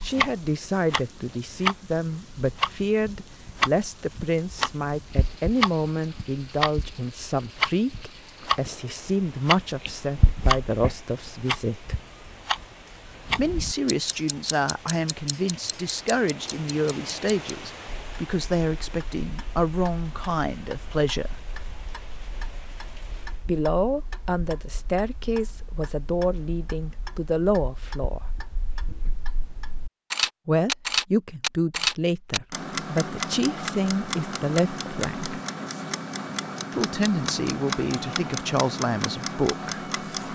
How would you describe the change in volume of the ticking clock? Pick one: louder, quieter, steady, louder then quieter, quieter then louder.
quieter then louder.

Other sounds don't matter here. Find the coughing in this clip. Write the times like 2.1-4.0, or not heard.
not heard.